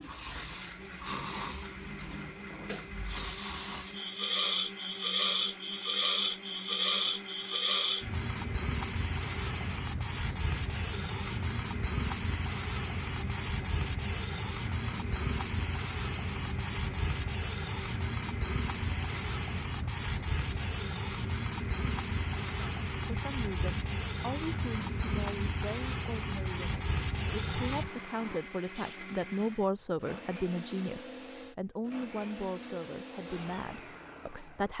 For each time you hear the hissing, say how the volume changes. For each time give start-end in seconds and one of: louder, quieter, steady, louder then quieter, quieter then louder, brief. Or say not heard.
0.0-29.0 steady.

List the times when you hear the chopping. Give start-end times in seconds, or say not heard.
not heard.